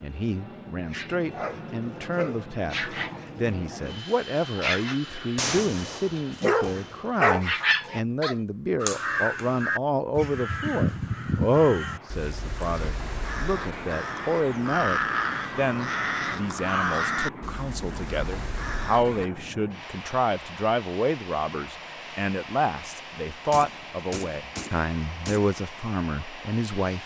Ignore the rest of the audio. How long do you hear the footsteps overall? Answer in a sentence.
You can't hear the footsteps here.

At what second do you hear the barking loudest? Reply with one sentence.
The volume of the barking peaks at 7 seconds.